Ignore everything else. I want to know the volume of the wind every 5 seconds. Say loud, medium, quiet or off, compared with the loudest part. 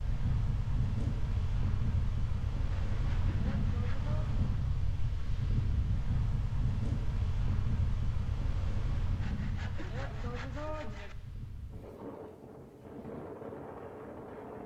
loud, loud, medium.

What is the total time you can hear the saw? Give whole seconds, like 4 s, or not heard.
4 s.